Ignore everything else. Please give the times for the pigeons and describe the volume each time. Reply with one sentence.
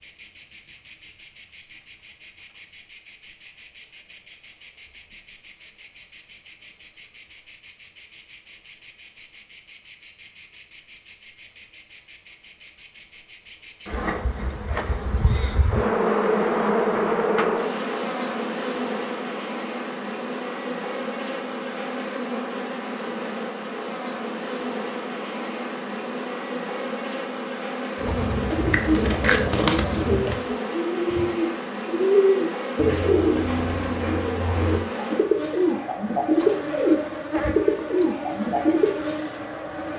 The pigeons can be heard from 27.9 to 38.9 s, at a steady volume.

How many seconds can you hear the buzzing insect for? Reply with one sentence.
You can hear the buzzing insect for 40 seconds altogether.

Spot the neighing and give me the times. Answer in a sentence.
You can't hear the neighing here.